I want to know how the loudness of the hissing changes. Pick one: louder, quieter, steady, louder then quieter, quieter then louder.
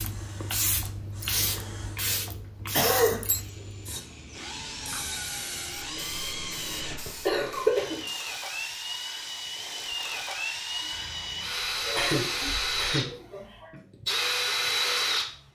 quieter.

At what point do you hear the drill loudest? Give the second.
15 s.